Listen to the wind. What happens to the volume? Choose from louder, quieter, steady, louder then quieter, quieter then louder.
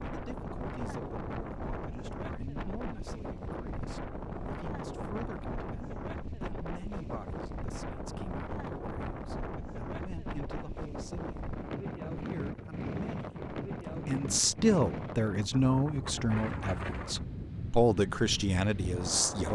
steady.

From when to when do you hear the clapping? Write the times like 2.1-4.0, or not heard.
not heard.